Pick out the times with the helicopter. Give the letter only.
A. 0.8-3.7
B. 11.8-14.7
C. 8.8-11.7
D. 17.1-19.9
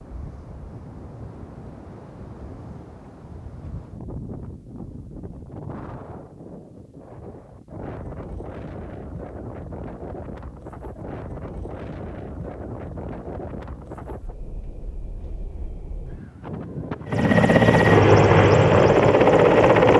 D.